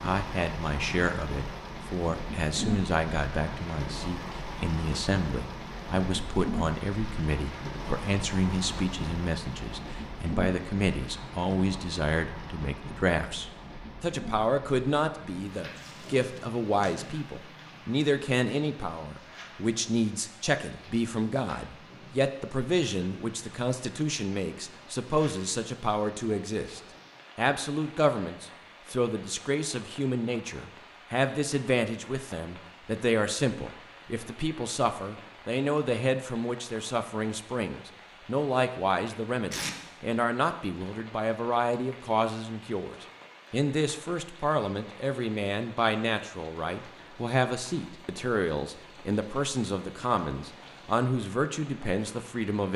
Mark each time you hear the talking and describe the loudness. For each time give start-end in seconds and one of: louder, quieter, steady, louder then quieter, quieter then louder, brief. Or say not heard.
0.0-52.7 steady.